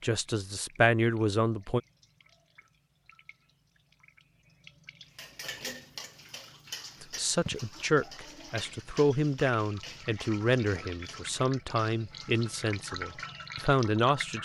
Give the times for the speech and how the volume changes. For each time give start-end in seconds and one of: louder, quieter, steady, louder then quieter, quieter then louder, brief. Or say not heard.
0.0-1.8 brief
7.0-14.4 steady.